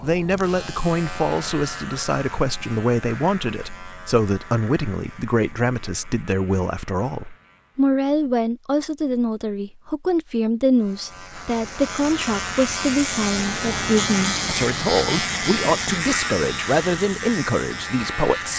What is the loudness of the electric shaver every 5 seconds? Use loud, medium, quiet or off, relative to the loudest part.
medium, quiet, loud, loud.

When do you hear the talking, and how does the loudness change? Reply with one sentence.
The talking can be heard from 0.0 to 18.5 s, at a steady volume.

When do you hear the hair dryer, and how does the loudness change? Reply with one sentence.
The hair dryer can't be heard in this clip.